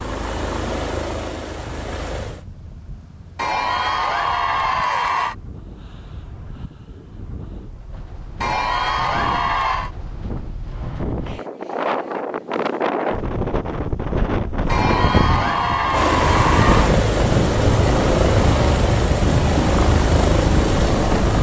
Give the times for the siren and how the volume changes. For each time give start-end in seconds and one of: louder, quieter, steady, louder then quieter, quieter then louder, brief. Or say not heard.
not heard.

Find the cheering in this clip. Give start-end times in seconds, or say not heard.
3.4-5.3, 8.4-9.9, 14.7-17.0.